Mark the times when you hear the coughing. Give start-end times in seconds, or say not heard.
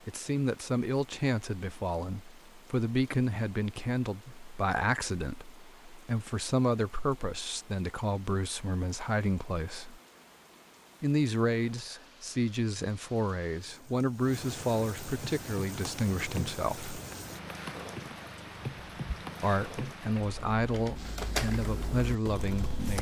not heard.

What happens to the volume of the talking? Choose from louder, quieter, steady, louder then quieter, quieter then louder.
steady.